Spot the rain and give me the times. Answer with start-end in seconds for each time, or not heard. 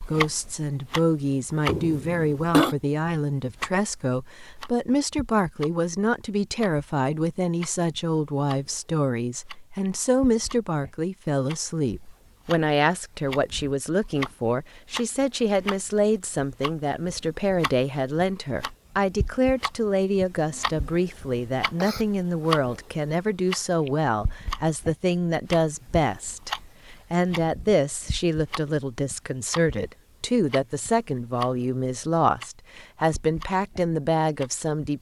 not heard.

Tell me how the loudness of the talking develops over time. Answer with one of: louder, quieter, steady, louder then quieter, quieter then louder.
steady.